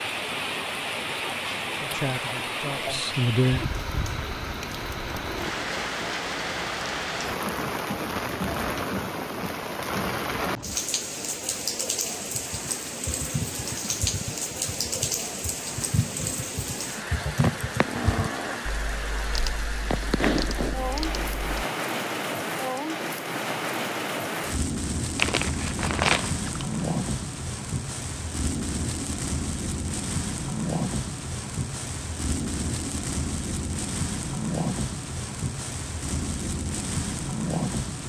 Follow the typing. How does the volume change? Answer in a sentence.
The loudness of the typing goes up, then down.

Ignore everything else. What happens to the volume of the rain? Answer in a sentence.
The volume of the rain stays about the same.